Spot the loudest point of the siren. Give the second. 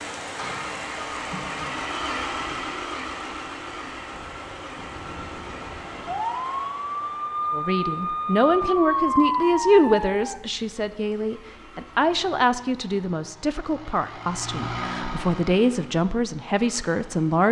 9 s.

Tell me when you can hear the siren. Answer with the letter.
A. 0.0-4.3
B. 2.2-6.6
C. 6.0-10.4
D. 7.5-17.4
C.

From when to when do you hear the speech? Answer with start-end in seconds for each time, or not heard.
7.5-17.4.